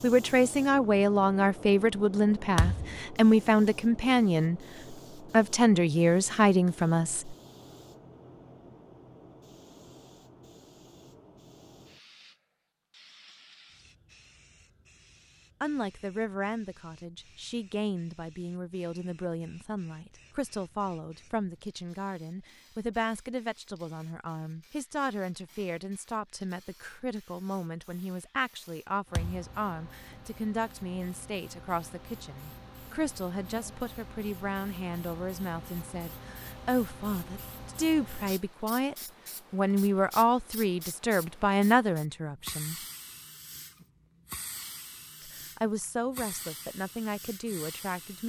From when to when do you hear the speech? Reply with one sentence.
The speech can be heard from 0.0 to 7.3 s, from 15.6 to 42.8 s and from 45.2 to 48.2 s.